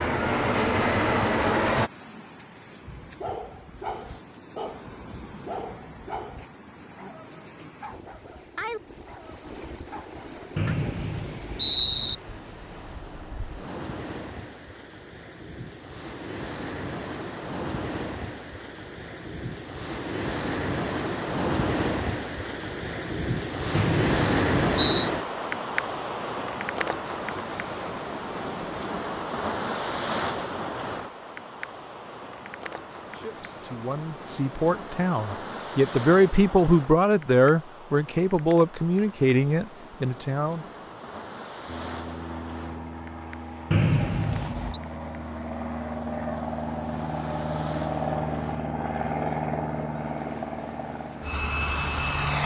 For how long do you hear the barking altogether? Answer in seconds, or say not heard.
8 s.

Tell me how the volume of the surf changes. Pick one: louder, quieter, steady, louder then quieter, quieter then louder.
louder then quieter.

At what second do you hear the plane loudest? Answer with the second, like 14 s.
1 s.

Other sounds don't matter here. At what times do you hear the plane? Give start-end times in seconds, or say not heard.
0.0-1.9, 41.6-52.4.